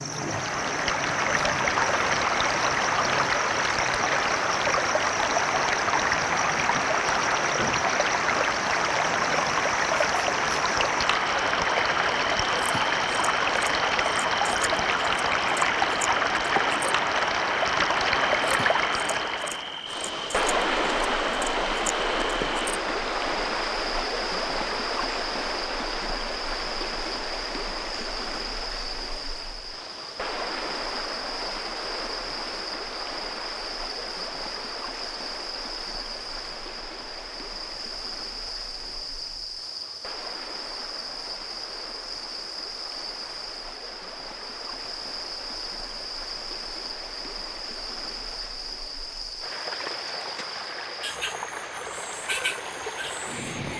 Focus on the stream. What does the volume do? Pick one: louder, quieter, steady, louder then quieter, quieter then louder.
quieter.